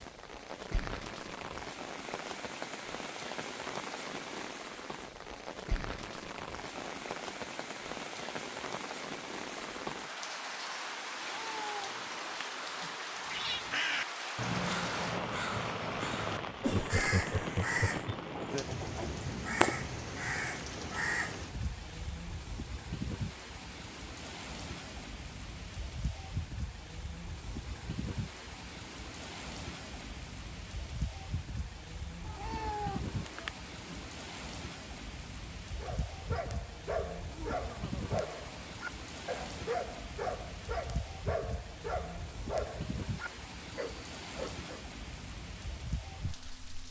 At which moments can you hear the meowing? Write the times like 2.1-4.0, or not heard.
11.2-13.0, 32.2-34.0.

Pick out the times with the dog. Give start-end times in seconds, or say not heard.
35.8-44.8.